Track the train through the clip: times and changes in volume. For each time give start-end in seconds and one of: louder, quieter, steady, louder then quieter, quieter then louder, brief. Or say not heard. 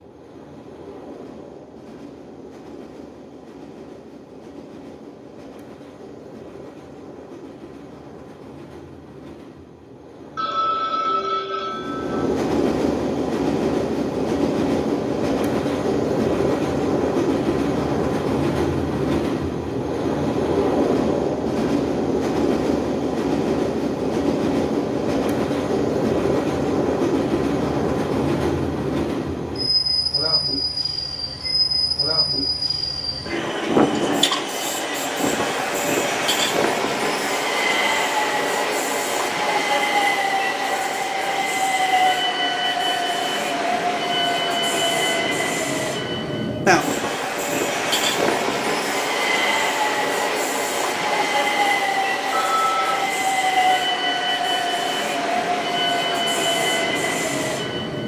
0.0-58.0 louder.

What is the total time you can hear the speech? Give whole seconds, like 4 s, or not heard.
not heard.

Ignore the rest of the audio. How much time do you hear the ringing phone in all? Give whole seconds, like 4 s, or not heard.
3 s.